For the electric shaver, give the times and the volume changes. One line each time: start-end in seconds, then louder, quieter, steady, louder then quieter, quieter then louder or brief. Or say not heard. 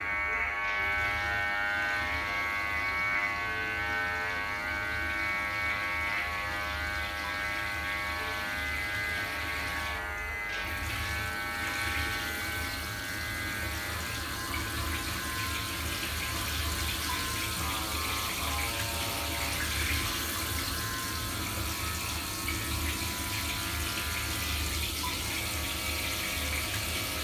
0.0-27.2 quieter.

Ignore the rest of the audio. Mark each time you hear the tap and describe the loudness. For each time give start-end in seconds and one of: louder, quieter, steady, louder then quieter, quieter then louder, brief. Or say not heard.
0.0-27.2 louder.